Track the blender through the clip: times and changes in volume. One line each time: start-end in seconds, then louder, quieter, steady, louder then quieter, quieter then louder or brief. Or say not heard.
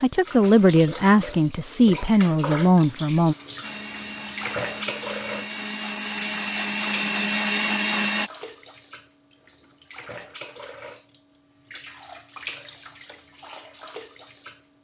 3.6-8.3 louder.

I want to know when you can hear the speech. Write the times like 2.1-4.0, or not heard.
0.0-3.4.